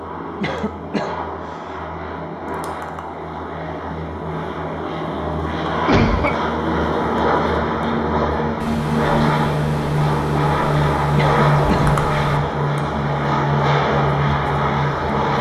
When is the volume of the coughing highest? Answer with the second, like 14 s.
6 s.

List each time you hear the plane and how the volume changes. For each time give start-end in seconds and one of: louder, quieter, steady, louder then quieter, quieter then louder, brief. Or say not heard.
0.0-15.3 louder.